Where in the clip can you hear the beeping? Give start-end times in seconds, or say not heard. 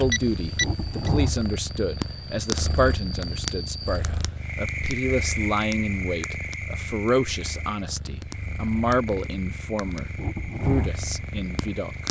0.1-1.1.